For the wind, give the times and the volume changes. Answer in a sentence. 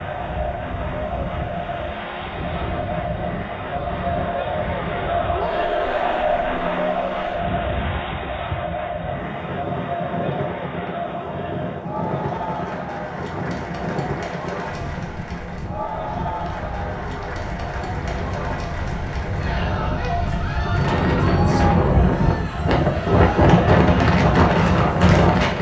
The wind can be heard from 0.0 to 25.5 s, getting louder.